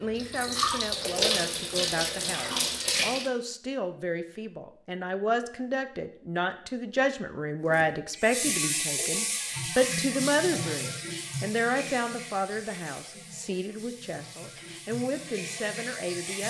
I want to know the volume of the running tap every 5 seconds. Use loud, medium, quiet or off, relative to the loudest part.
loud, loud, medium, medium.